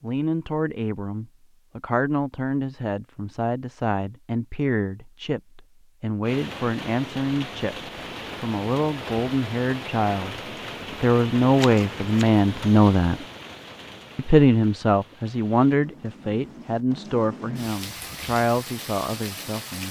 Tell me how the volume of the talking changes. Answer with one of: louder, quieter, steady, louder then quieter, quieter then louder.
louder then quieter.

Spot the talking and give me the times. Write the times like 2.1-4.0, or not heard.
0.0-13.2, 14.2-19.8.